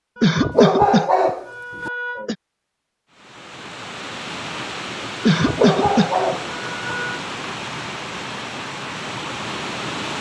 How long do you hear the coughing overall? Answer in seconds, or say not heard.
4 s.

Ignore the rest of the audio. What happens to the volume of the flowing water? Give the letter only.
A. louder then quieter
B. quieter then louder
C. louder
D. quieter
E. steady
E.